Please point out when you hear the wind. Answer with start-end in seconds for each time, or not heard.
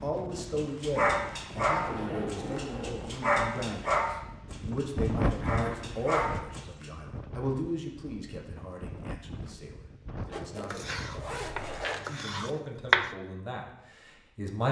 0.0-11.7.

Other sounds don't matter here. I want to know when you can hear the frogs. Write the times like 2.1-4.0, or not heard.
not heard.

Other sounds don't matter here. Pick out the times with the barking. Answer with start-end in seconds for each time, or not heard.
0.5-6.9.